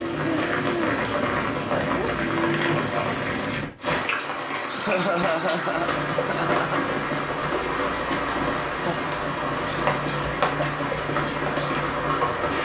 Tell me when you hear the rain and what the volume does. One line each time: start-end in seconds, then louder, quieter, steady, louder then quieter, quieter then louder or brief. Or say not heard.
0.0-12.5 steady.